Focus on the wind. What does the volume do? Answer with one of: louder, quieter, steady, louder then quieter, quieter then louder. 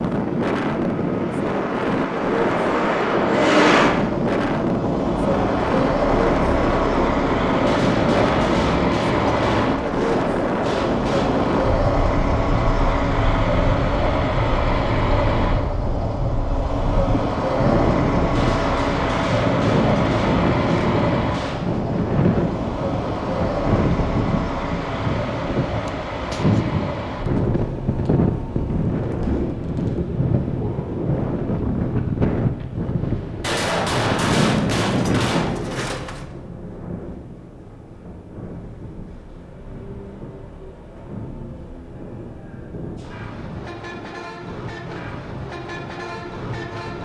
quieter.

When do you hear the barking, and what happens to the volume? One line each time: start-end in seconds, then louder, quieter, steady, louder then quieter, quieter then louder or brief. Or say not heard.
not heard.